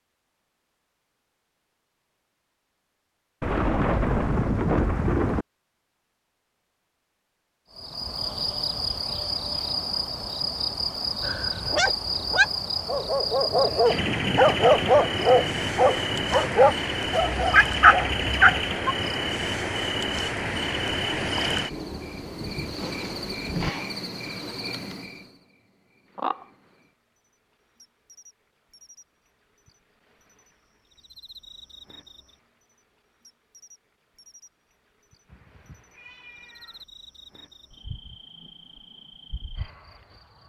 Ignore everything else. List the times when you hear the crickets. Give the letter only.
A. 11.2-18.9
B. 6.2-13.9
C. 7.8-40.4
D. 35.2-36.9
C.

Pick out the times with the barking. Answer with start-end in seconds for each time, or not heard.
11.2-18.9.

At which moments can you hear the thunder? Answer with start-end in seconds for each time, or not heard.
3.4-5.5, 21.7-23.7.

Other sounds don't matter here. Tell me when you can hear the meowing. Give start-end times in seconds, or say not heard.
35.2-36.9.